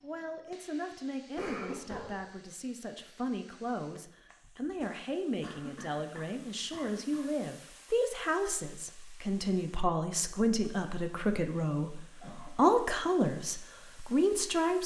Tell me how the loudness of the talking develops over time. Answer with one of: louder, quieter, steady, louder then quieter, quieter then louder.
louder.